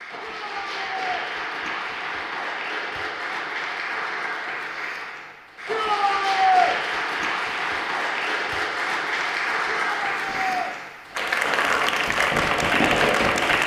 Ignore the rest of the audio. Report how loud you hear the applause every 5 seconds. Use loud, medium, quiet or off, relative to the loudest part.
medium, loud, loud.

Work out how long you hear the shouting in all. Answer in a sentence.
You can hear the shouting for 3 seconds altogether.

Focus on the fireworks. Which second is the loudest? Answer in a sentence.
The volume of the fireworks peaks at 13 seconds.